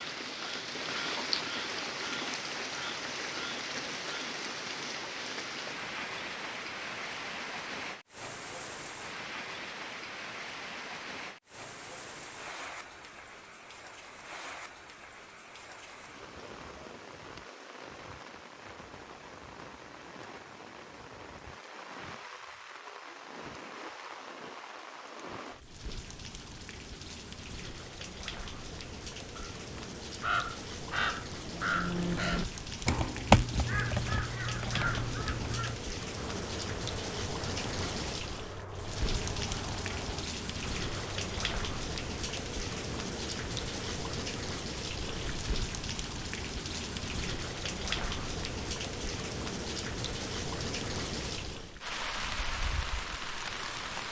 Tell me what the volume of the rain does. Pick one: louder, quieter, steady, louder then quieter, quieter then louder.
quieter then louder.